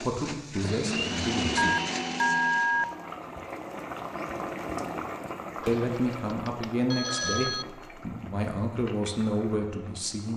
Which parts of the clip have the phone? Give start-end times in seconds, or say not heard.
1.6-2.9, 5.6-7.7.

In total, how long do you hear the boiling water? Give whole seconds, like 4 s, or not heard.
8 s.